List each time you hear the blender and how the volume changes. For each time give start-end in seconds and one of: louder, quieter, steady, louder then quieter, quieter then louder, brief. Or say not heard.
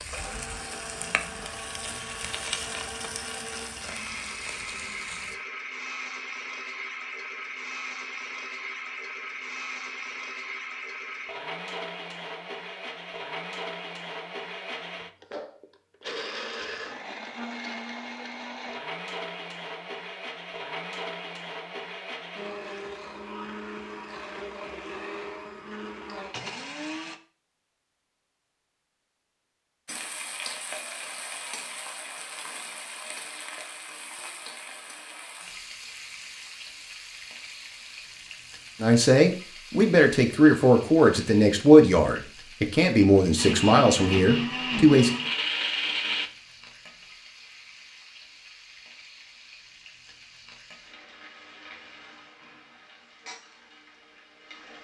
0.0-27.2 steady
43.4-46.3 brief.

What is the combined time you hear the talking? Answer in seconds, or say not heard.
6 s.